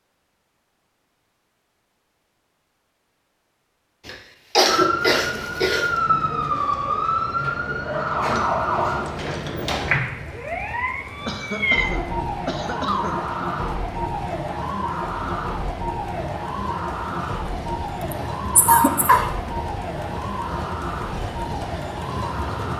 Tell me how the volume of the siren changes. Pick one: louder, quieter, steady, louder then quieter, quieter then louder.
quieter.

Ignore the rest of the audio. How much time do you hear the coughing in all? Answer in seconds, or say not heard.
5 s.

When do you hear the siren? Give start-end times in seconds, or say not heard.
4.7-22.7.